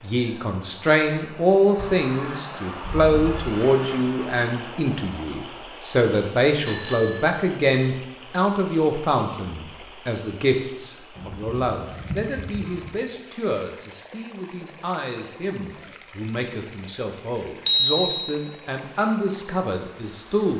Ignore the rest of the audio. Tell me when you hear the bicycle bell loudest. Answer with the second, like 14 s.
18 s.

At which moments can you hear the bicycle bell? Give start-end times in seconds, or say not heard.
6.6-7.2, 17.6-18.1.